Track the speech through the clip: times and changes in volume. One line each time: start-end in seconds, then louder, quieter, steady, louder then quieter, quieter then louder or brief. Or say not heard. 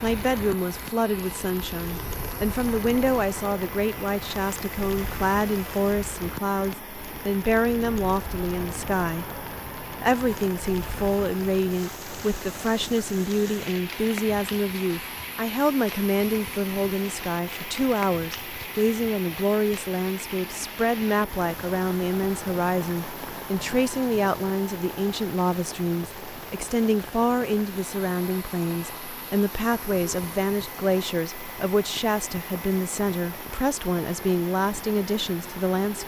0.0-36.0 steady.